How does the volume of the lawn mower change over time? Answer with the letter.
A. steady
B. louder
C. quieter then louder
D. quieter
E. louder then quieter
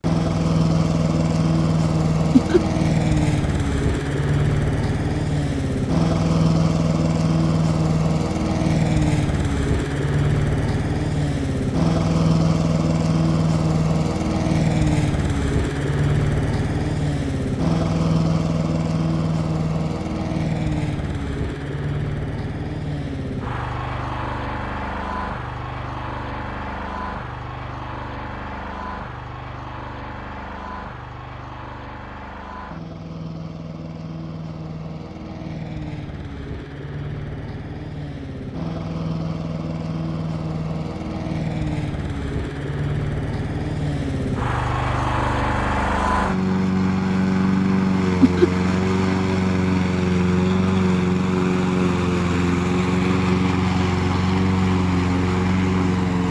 C.